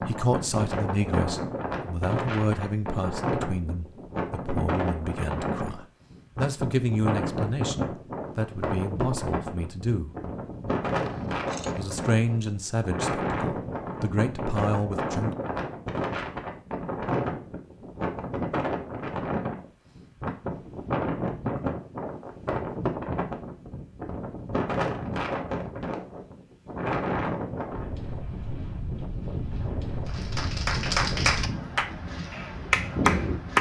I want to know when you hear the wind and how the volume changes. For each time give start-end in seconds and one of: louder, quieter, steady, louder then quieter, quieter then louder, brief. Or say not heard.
0.0-33.5 steady.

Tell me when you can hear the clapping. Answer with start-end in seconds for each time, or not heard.
30.1-33.5.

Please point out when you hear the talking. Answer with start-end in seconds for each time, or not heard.
0.0-10.1, 11.8-15.3.